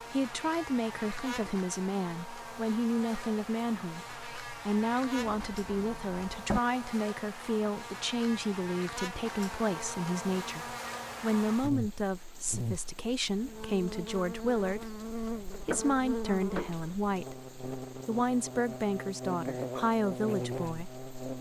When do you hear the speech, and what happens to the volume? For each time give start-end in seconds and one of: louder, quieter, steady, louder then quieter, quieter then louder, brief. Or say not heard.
0.1-21.1 steady.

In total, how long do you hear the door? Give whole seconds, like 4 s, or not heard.
3 s.